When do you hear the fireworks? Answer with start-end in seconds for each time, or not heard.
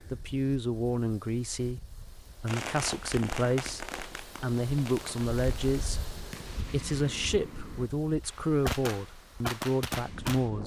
2.5-10.5.